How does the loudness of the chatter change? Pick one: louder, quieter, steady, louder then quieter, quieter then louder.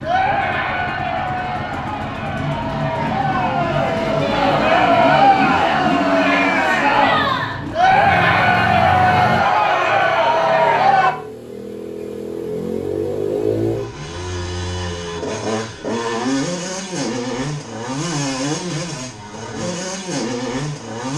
louder.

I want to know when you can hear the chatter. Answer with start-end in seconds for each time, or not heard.
0.0-11.2.